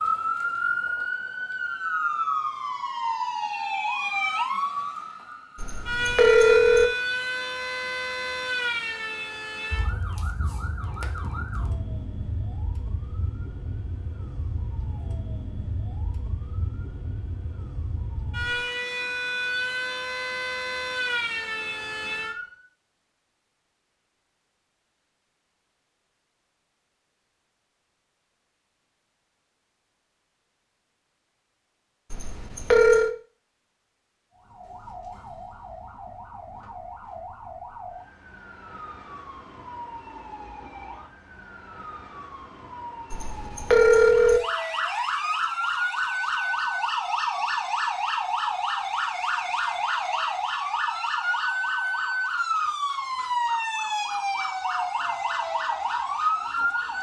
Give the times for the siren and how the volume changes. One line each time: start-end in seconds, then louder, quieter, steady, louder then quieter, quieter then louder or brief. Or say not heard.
0.0-22.6 quieter then louder
34.3-56.9 louder.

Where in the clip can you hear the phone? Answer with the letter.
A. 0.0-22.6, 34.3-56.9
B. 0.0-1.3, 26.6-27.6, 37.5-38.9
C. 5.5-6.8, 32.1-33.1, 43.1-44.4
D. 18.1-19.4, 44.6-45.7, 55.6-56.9
C.